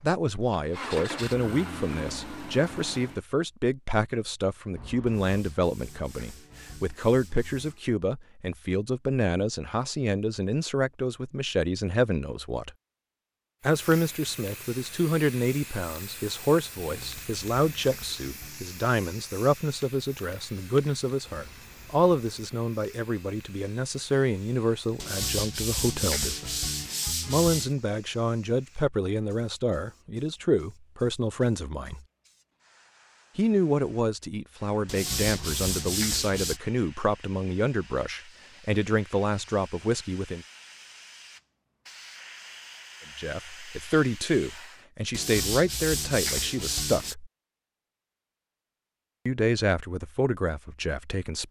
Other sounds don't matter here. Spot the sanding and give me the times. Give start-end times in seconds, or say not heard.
5.0-7.8, 16.9-18.7, 24.9-27.8, 34.9-36.6, 45.1-47.1.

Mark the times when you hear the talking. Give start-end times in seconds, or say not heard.
0.0-12.7, 13.6-26.6, 27.2-32.0, 33.4-40.5, 43.1-47.3, 49.2-51.4.